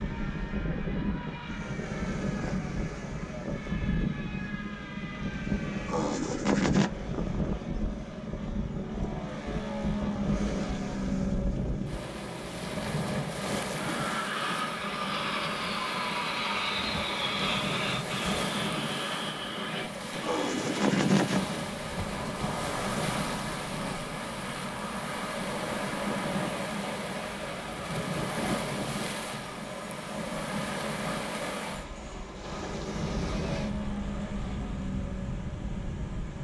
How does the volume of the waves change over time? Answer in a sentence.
The volume of the waves stays about the same.